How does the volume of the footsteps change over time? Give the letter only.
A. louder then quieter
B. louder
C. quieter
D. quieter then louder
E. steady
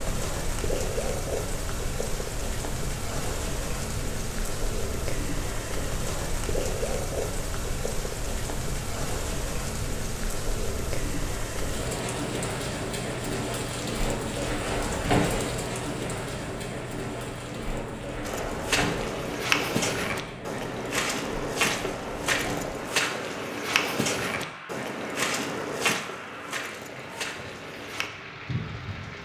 C.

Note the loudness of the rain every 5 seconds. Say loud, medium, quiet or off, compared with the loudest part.
loud, loud, loud, loud, medium, medium.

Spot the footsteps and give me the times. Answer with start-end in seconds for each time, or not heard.
18.2-28.1.